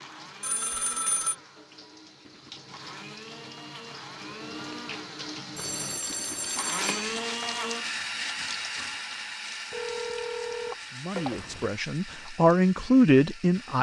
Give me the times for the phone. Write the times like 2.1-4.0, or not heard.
0.4-1.4, 5.5-7.2, 9.7-11.7.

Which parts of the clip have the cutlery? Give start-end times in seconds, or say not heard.
not heard.